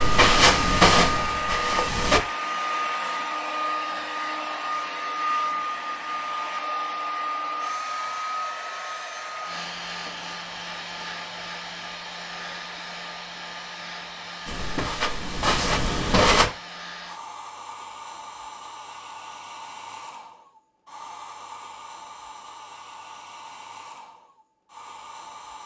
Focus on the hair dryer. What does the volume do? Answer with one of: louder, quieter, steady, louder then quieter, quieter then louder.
quieter.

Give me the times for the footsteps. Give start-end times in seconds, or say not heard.
0.0-2.2, 14.4-16.4.